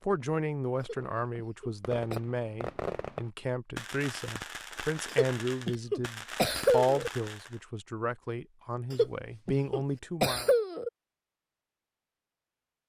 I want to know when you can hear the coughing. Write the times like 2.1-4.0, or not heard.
0.8-2.2, 5.1-7.1, 8.9-10.9.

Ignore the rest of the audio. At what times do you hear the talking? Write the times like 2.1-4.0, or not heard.
0.1-10.5.